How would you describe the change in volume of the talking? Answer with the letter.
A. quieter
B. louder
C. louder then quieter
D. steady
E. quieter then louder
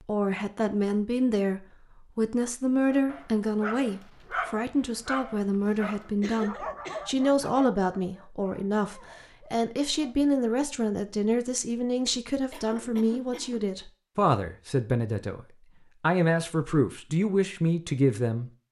D.